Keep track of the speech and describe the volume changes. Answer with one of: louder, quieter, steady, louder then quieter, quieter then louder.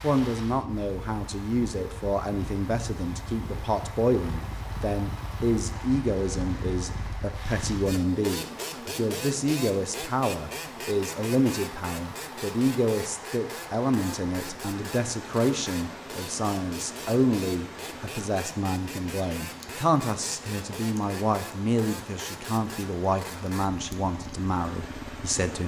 steady.